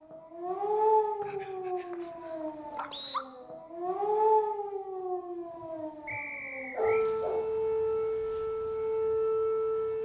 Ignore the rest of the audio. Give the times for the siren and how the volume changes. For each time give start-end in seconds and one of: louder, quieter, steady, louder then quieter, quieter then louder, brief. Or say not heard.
0.1-10.0 quieter then louder.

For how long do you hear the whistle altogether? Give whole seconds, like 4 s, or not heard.
3 s.